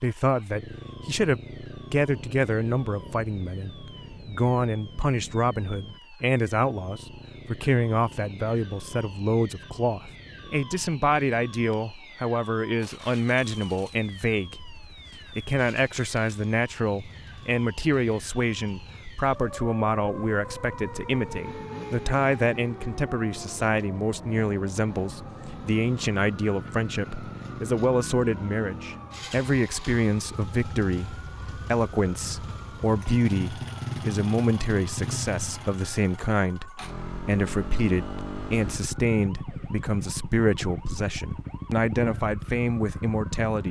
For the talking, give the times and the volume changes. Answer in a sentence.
The talking can be heard from 0.0 to 43.6 s, at a steady volume.